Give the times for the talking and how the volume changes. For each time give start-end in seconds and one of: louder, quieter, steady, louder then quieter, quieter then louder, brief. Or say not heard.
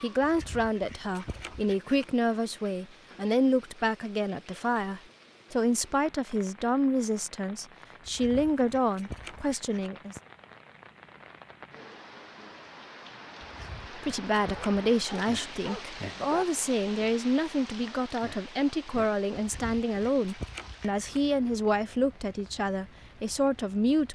0.0-10.2 steady
13.9-24.1 steady.